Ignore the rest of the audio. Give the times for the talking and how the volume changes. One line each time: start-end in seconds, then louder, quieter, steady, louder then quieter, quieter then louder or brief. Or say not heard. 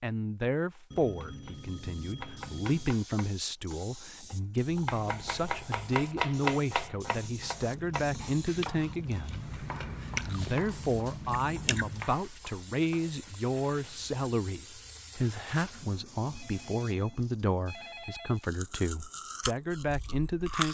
0.0-20.6 steady.